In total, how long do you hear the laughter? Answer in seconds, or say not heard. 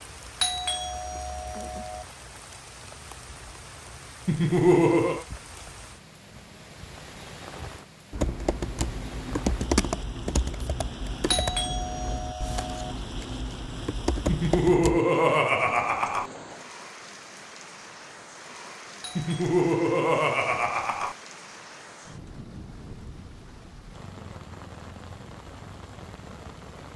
5 s.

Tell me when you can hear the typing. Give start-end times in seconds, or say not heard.
8.1-15.0.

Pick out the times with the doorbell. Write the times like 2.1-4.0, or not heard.
0.4-2.0, 11.3-12.9, 19.0-19.6.